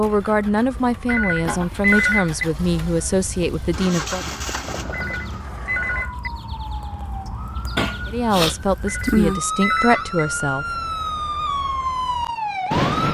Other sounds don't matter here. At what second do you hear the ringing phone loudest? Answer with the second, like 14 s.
2 s.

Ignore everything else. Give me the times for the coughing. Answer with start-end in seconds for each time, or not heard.
1.4-2.1, 7.8-8.6.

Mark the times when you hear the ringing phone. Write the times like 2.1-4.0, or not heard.
1.1-2.5, 4.9-6.3, 8.8-10.2.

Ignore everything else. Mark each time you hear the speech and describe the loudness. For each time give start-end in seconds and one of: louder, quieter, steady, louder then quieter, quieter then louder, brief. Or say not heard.
0.0-4.2 steady
8.1-10.7 brief.